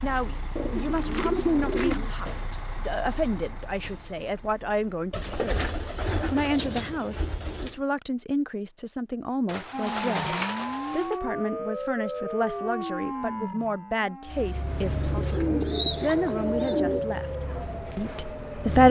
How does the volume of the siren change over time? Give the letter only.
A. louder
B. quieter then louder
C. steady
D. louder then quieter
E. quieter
B.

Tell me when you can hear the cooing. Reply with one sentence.
The cooing can be heard from 0.6 to 2.1 s, from 5.1 to 7.8 s, from 9.4 to 11.2 s and from 15.0 to 17.1 s.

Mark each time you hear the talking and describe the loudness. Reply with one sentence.
You can hear the talking from 0.0 to 18.8 s, at a steady volume.